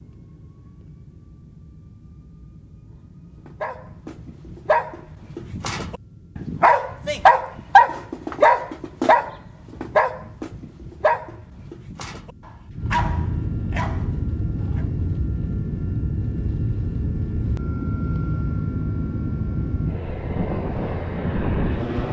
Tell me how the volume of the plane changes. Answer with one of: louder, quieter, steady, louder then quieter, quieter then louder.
louder.